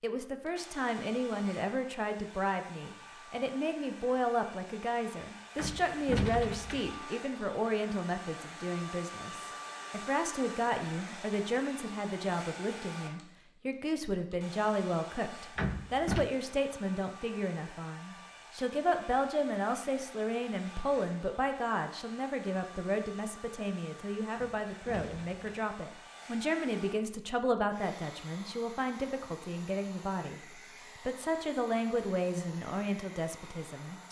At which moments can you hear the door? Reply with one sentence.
You can hear the door from 5.5 to 7.0 s, from 15.6 to 16.2 s and from 24.4 to 25.6 s.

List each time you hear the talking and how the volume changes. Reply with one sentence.
The talking can be heard from 0.0 to 34.0 s, at a steady volume.